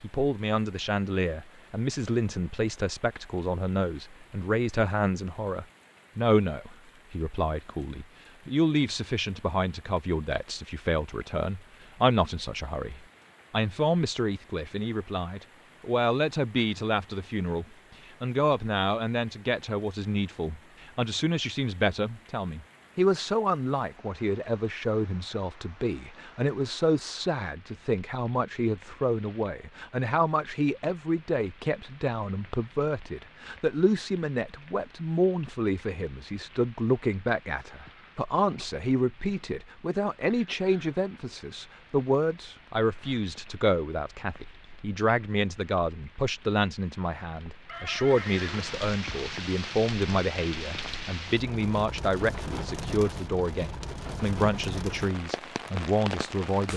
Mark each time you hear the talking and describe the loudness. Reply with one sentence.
The talking can be heard from 0.0 to 56.7 s, at a steady volume.